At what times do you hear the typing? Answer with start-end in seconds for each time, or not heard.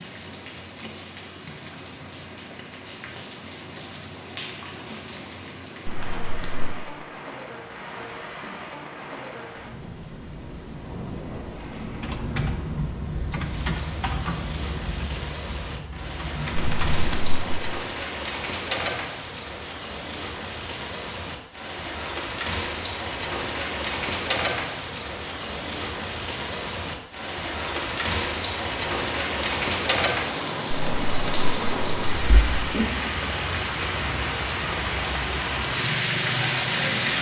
11.9-17.3.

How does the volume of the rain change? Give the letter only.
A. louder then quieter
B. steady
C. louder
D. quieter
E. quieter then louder
C.